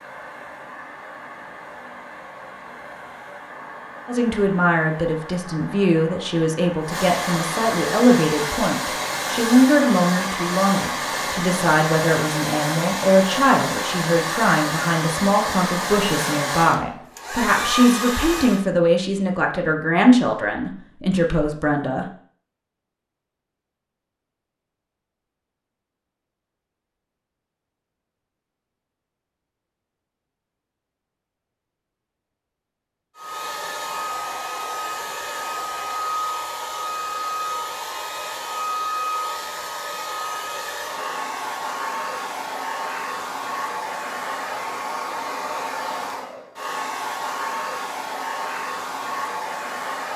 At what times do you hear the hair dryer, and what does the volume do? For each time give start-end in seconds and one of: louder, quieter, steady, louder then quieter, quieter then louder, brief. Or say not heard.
0.0-18.6 louder
33.1-50.1 steady.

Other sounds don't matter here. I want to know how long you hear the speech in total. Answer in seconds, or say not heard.
18 s.